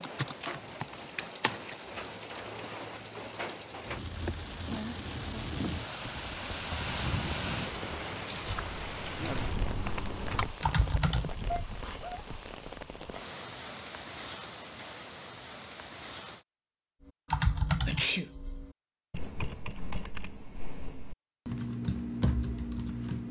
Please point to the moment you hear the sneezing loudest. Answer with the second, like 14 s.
18 s.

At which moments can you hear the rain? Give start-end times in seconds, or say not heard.
0.0-16.4.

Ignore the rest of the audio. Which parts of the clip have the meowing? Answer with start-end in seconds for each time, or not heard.
not heard.